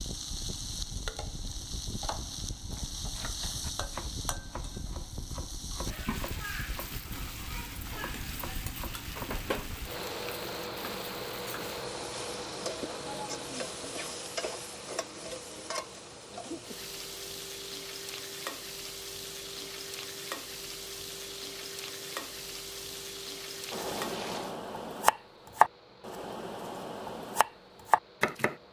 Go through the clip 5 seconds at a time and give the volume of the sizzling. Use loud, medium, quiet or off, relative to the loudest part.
loud, loud, loud, loud, loud, off.